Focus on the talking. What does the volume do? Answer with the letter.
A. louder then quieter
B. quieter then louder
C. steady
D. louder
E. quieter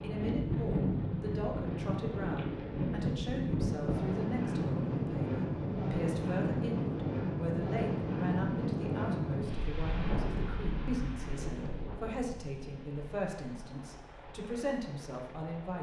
C.